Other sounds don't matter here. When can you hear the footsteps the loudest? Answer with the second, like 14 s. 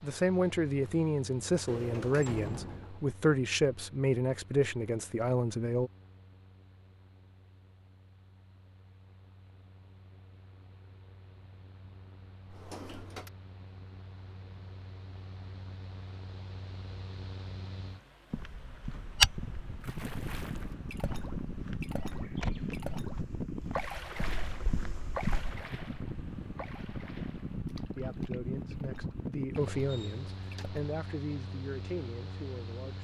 19 s.